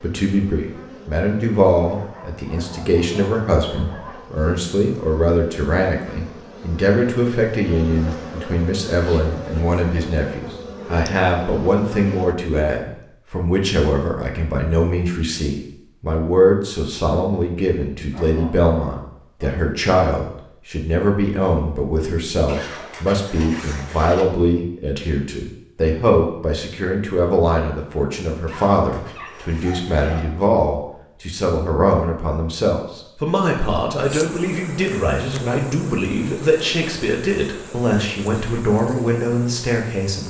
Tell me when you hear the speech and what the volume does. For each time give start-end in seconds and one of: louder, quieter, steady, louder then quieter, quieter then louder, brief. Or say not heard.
0.0-40.2 steady.